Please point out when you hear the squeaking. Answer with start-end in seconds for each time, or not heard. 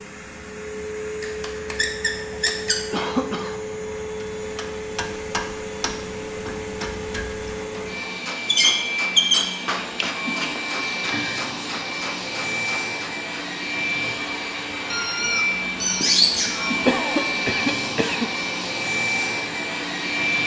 1.2-2.8, 8.4-9.4, 14.9-16.7.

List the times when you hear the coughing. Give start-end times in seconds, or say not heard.
2.9-3.6, 9.7-11.4, 16.9-18.3.